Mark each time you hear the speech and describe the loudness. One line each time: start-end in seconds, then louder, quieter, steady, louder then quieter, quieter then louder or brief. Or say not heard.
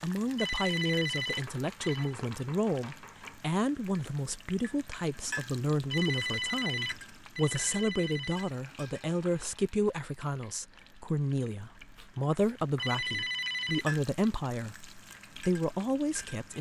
0.0-16.5 steady.